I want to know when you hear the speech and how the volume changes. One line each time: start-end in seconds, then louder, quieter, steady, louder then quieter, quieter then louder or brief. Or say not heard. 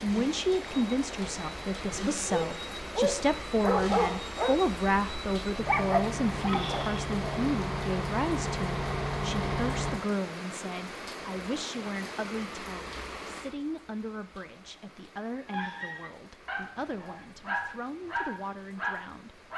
0.0-19.4 quieter.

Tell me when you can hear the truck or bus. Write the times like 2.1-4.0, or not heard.
0.0-10.0.